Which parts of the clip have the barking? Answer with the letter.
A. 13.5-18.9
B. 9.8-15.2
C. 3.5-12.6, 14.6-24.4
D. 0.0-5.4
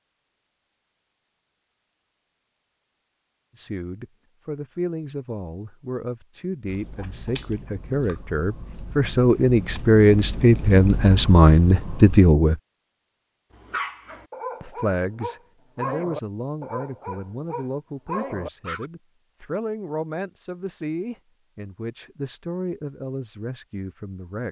A.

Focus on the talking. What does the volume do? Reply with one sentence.
The volume of the talking goes up, then down.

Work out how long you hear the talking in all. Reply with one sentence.
You can hear the talking for 19 seconds altogether.